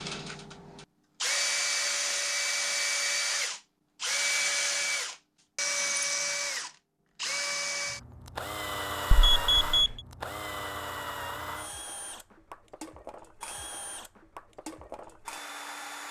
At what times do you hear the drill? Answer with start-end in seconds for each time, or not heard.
0.0-16.0.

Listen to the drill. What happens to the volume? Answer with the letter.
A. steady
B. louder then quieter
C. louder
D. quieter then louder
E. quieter
E.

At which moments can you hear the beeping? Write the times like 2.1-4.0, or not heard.
9.1-10.0.